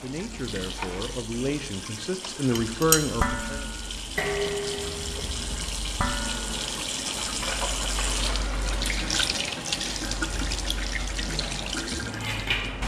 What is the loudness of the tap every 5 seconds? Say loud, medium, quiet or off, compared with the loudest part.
medium, loud, loud.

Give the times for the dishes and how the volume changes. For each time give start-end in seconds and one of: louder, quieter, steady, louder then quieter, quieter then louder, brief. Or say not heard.
2.5-8.1 quieter then louder
11.2-12.8 brief.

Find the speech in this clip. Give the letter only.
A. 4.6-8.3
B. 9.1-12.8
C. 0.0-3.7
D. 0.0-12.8
C.